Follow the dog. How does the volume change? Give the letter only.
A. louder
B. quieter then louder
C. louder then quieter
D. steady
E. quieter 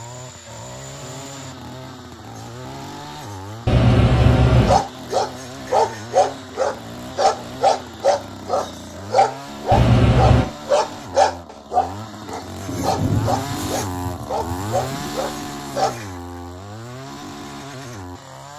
E.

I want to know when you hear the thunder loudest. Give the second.
13 s.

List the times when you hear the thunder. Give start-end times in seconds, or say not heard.
12.7-15.1.